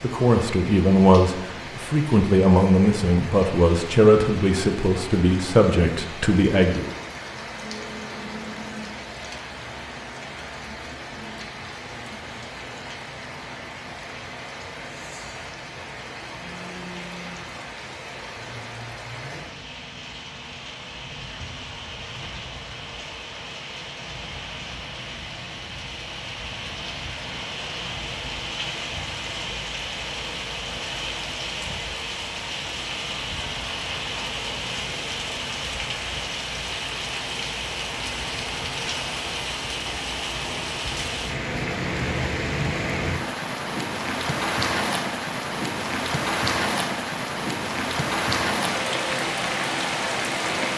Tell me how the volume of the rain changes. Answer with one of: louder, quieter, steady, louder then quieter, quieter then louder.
louder.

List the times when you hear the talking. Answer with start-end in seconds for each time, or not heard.
0.0-6.9.